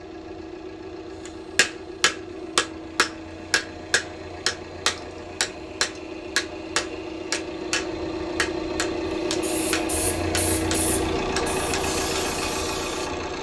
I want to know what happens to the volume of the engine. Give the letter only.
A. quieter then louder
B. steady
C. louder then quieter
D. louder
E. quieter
D.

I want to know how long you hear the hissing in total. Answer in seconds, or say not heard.
4 s.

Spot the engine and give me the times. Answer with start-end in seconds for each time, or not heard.
0.0-13.3.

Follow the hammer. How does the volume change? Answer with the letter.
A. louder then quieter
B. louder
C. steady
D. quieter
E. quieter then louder
D.